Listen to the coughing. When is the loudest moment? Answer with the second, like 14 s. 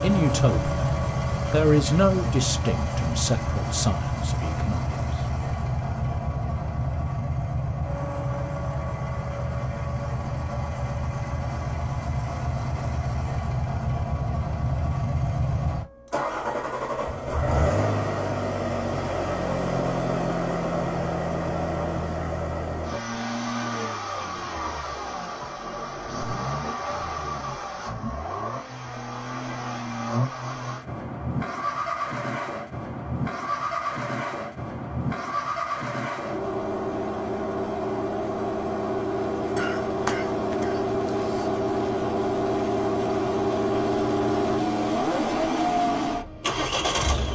40 s.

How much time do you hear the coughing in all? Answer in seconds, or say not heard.
2 s.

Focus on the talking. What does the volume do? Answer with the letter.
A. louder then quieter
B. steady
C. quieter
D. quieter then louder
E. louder
A.